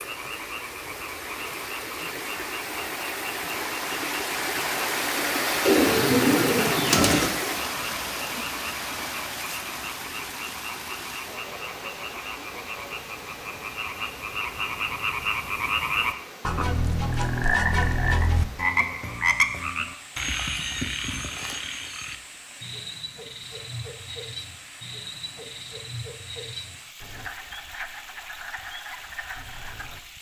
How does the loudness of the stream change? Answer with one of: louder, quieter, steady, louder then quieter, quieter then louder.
quieter.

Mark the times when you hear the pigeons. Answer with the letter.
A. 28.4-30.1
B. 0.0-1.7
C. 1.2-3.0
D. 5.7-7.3
D.